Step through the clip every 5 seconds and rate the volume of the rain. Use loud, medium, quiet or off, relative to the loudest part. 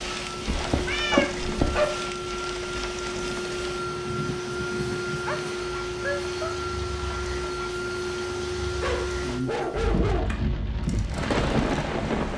medium, medium, loud.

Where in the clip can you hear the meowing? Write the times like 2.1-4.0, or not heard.
0.5-1.8.